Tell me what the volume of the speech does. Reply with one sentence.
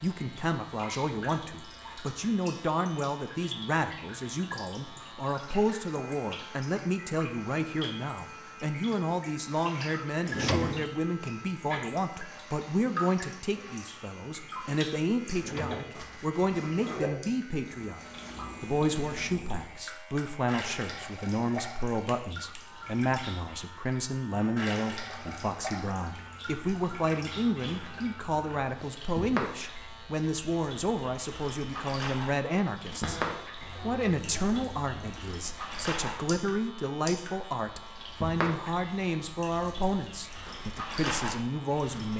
The loudness of the speech stays about the same.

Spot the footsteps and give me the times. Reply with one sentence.
You can't hear the footsteps here.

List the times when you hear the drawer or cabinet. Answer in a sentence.
The drawer or cabinet can be heard from 10.2 to 10.9 s, from 15.3 to 16.0 s and from 32.9 to 34.3 s.